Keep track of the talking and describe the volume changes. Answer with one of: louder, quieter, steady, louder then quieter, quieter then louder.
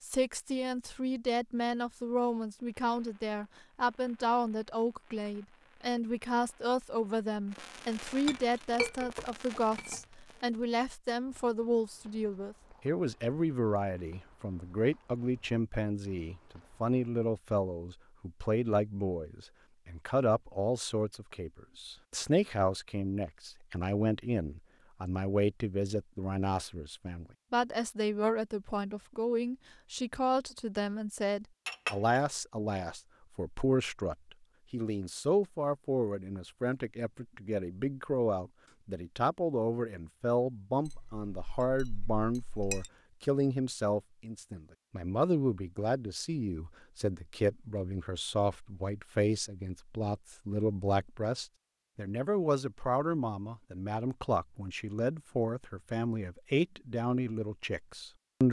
steady.